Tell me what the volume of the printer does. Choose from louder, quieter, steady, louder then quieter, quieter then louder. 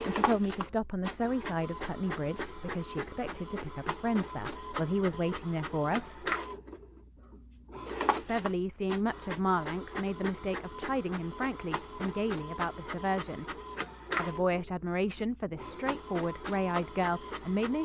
steady.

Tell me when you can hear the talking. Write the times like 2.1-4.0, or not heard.
0.0-6.3, 8.2-13.6, 14.2-17.7.